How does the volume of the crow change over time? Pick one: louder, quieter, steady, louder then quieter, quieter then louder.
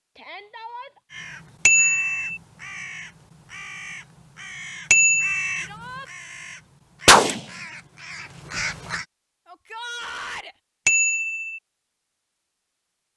louder then quieter.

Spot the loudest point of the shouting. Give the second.
10 s.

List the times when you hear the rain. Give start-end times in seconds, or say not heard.
not heard.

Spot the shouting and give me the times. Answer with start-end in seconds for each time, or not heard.
0.1-1.0, 5.6-6.1, 9.4-10.6.